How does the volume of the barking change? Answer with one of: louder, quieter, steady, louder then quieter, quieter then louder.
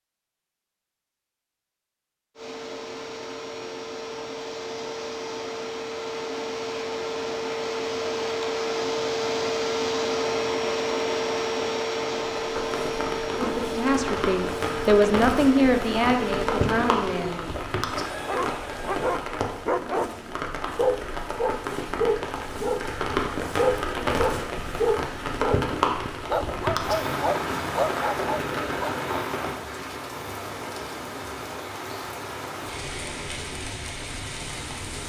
steady.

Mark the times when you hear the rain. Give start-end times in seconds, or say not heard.
12.3-35.0.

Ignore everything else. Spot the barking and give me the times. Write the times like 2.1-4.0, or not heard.
18.2-29.1.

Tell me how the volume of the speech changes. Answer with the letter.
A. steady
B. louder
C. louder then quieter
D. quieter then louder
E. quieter
C.